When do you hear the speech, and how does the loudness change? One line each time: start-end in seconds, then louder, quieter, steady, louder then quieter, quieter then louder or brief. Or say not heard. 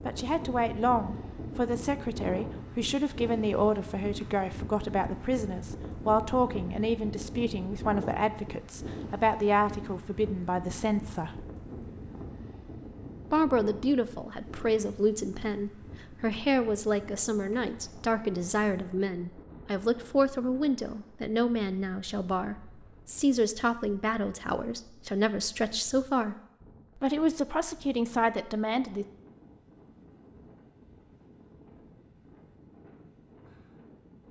0.1-11.4 steady
13.3-26.4 steady
27.0-29.1 brief.